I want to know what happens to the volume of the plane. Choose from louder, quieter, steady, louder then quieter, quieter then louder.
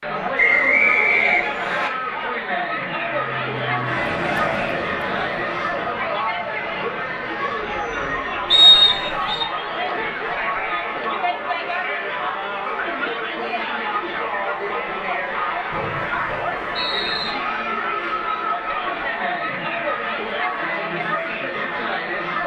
quieter.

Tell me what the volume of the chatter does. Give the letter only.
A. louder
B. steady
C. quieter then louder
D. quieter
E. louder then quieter
B.